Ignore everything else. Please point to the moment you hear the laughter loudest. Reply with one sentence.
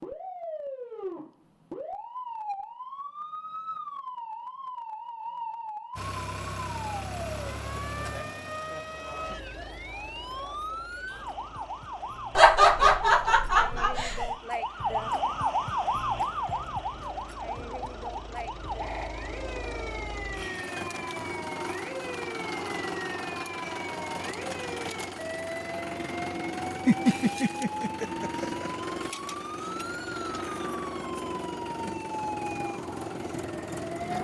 The loudest moment of the laughter is at 13 seconds.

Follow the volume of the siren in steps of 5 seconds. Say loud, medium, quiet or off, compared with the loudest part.
medium, medium, loud, loud, medium, medium, medium.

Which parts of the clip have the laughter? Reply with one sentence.
You can hear the laughter from 12.3 to 14.3 s and from 26.9 to 28.7 s.